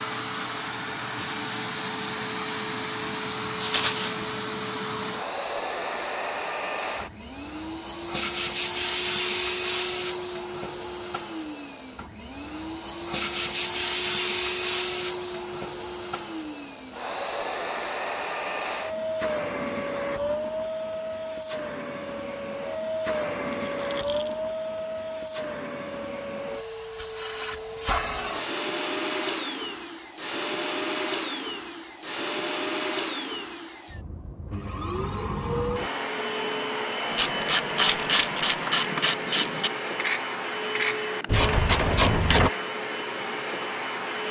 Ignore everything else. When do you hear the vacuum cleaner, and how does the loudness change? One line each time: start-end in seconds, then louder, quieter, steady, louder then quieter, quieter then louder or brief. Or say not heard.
0.0-44.2 steady.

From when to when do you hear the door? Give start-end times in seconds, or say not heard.
not heard.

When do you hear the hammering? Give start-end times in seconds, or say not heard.
not heard.